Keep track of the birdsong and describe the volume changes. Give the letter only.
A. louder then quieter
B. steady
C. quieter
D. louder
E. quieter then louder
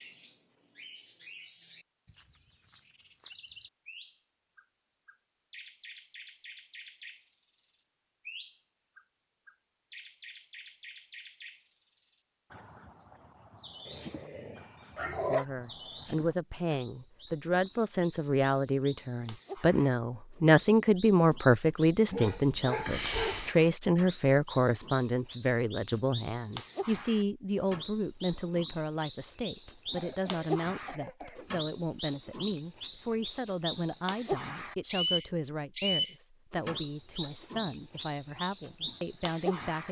D.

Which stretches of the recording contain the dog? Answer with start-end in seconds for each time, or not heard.
13.8-15.4, 22.1-23.6.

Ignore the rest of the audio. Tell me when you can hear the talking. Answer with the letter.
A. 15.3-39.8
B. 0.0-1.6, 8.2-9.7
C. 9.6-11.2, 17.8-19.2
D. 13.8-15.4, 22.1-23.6
A.